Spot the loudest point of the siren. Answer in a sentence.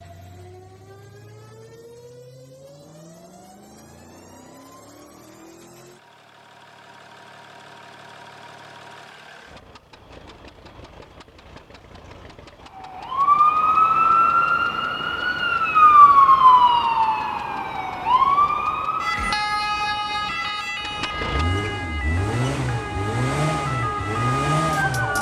The volume of the siren peaks at 16 seconds.